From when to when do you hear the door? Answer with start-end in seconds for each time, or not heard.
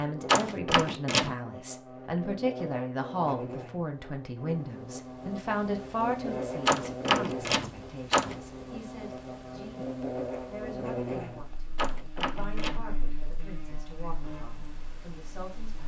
0.2-1.4, 6.7-8.4, 11.8-12.8.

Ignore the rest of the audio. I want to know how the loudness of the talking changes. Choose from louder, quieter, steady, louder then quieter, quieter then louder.
quieter.